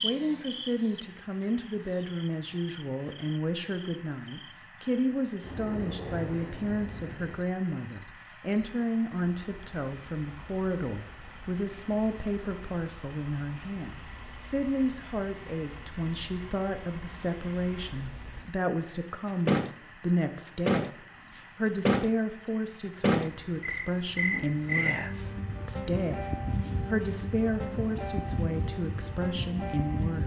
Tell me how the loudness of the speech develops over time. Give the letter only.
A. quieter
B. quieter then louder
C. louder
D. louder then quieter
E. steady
E.